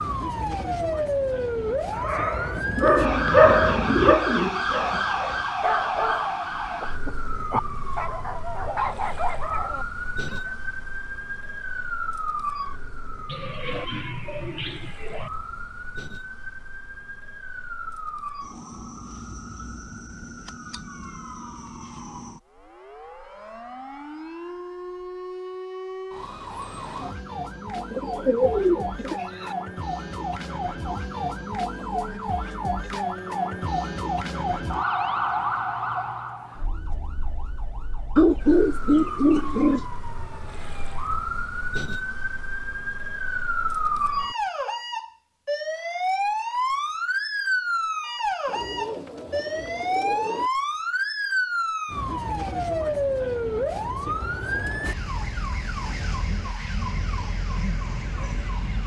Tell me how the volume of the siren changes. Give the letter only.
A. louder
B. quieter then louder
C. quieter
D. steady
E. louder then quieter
B.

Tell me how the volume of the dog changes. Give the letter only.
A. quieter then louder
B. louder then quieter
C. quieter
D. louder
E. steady
C.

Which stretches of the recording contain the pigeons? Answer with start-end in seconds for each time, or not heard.
2.5-5.0, 13.2-15.3, 27.8-29.6, 38.1-39.9, 48.5-50.5.